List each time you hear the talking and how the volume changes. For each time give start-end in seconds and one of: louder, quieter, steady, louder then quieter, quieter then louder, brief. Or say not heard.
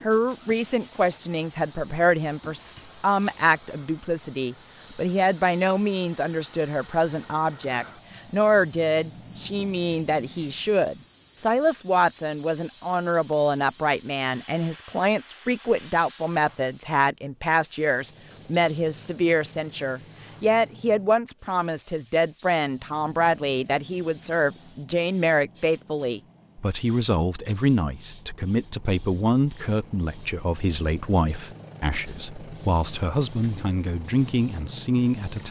0.0-35.4 steady.